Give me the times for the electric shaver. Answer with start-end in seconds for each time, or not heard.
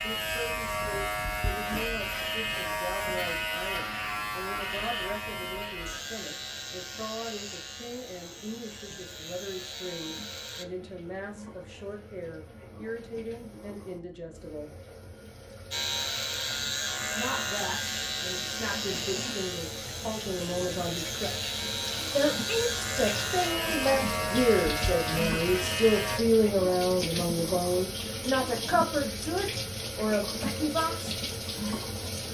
0.0-10.7, 15.7-26.2.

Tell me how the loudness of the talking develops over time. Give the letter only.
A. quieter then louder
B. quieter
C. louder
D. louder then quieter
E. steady
C.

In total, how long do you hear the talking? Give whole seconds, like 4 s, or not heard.
28 s.